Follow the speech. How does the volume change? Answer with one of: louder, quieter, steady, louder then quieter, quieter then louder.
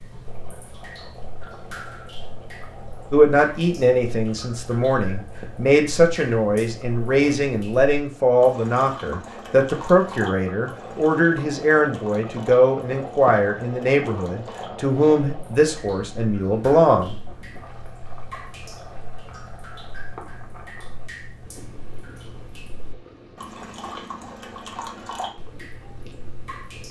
steady.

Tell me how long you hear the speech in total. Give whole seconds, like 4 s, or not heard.
14 s.